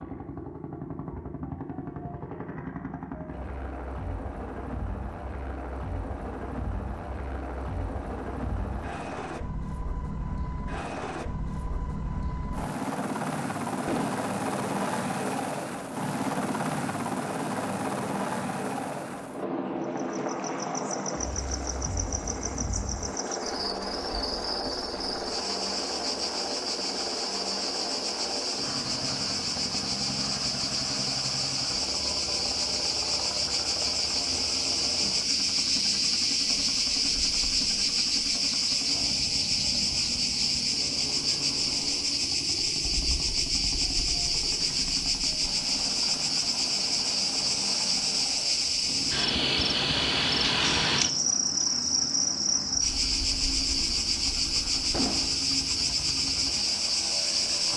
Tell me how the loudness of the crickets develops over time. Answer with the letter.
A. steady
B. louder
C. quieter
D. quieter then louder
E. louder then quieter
B.